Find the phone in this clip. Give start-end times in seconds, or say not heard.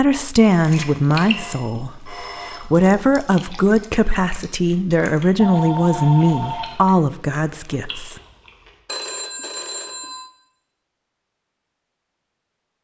0.6-2.7, 5.3-6.8, 8.8-10.3.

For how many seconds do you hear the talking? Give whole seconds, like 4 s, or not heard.
8 s.